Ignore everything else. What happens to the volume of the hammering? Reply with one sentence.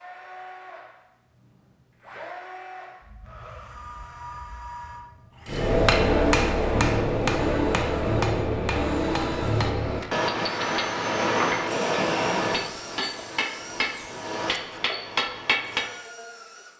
The loudness of the hammering goes down.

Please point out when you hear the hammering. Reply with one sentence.
The hammering can be heard from 5.5 to 15.9 s.